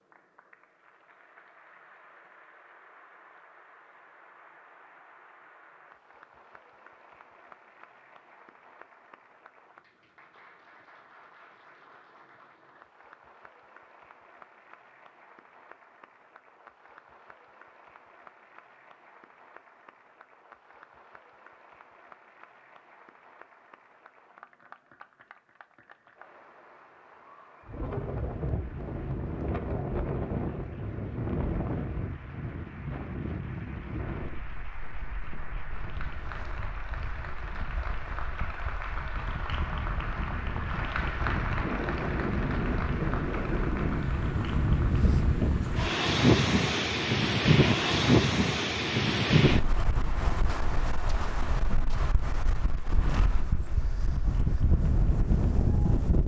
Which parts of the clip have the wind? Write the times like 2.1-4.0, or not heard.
27.6-56.2.